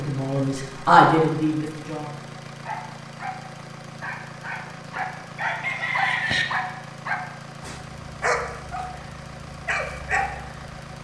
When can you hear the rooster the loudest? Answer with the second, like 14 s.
6 s.